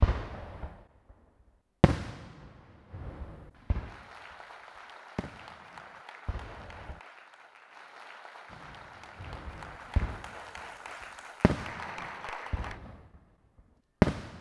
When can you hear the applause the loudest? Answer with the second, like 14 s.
12 s.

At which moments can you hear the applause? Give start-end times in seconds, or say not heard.
3.7-12.8.